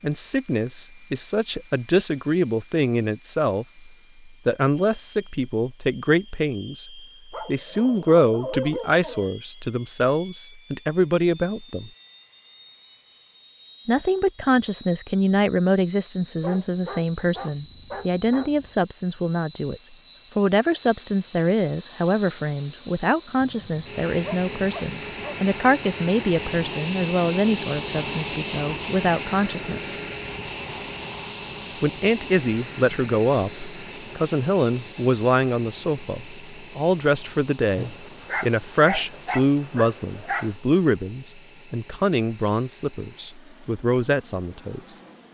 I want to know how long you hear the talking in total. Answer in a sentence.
You can hear the talking for 41 seconds altogether.